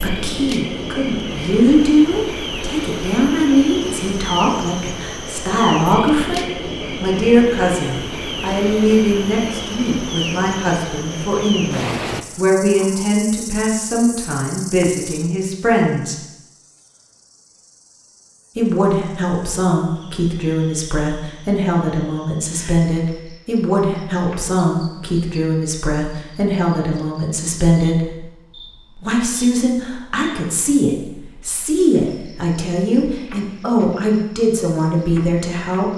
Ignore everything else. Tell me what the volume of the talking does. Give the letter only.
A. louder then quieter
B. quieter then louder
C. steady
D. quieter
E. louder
C.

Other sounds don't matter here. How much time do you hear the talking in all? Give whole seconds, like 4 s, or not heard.
33 s.